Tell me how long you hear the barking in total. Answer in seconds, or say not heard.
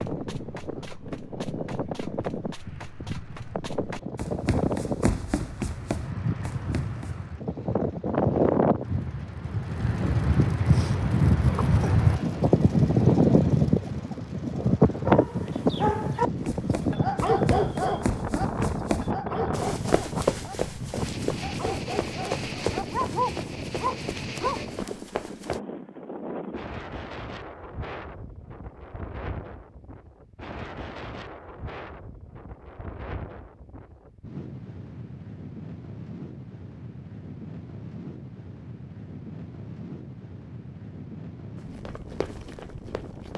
8 s.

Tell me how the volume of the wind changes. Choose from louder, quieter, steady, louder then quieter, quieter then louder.
louder then quieter.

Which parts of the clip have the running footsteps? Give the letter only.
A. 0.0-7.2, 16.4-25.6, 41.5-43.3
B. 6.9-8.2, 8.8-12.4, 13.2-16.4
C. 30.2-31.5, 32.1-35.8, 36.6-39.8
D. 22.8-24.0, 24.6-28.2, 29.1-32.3
A.